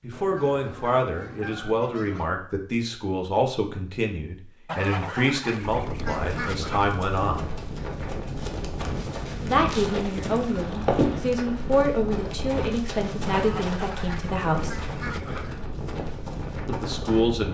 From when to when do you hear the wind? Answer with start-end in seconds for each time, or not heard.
5.6-17.4.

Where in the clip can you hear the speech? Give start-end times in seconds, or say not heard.
0.0-7.5, 9.4-14.8, 16.6-17.4.